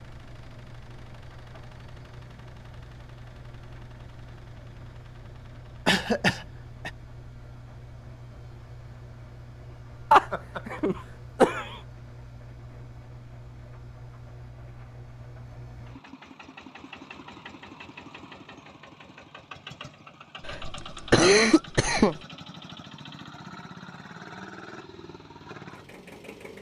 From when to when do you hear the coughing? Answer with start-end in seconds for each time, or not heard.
5.8-6.9, 10.1-11.8, 20.4-22.1.